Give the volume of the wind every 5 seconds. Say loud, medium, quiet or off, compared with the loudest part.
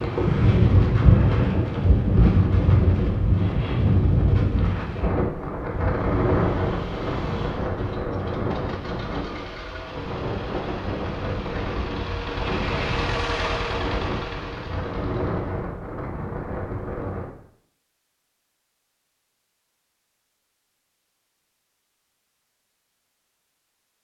loud, medium, medium, medium, off.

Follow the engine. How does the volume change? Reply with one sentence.
The volume of the engine goes up.